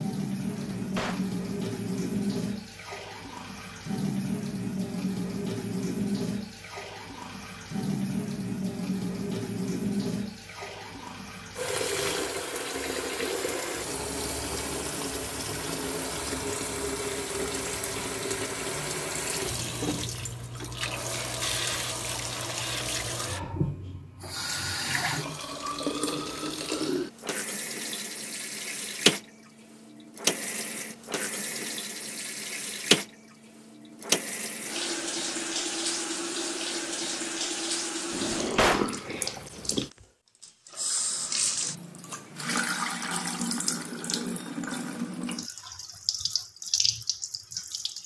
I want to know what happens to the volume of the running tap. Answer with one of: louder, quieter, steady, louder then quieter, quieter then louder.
steady.